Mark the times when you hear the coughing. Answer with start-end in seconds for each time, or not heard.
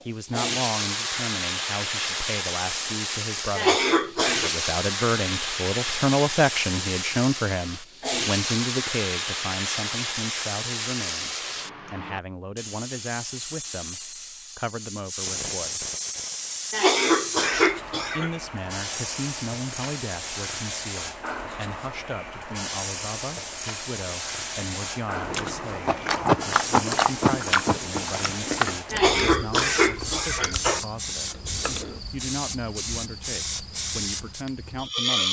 3.5-4.5, 16.7-18.3, 28.9-30.8.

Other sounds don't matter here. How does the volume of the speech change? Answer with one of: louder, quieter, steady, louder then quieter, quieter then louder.
quieter.